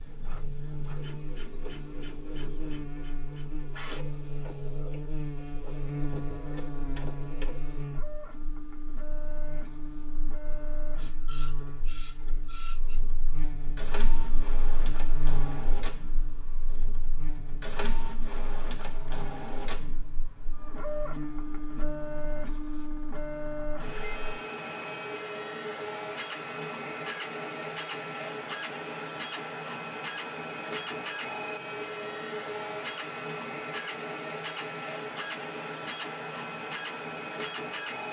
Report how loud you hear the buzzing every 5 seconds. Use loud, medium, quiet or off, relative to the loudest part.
loud, loud, medium, medium, medium, off, off, off.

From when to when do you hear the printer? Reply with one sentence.
The printer can be heard from 0.0 to 38.0 s.